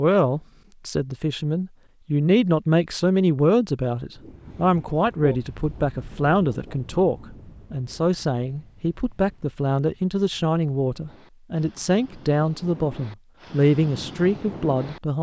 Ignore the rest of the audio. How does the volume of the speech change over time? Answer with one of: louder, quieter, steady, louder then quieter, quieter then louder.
steady.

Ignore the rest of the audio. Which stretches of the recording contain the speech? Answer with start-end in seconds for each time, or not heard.
0.0-15.1.